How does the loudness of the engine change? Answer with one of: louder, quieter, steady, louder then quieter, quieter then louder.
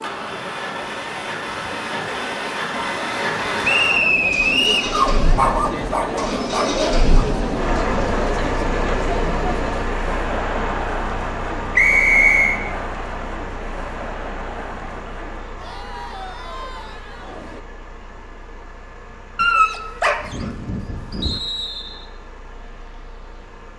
quieter.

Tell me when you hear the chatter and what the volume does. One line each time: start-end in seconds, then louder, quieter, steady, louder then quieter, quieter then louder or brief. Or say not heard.
0.0-17.6 louder then quieter.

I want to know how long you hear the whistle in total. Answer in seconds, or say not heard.
3 s.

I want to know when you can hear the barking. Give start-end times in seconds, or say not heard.
4.9-7.2, 19.4-21.4.